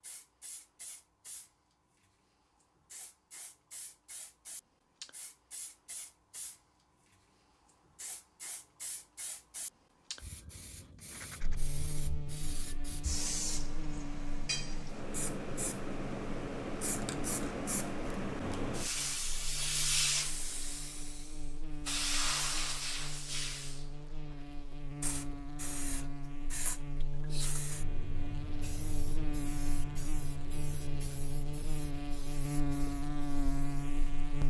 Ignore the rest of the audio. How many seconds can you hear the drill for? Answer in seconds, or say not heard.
not heard.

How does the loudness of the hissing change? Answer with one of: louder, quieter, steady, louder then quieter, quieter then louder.
louder then quieter.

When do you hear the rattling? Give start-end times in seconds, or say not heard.
10.9-11.6.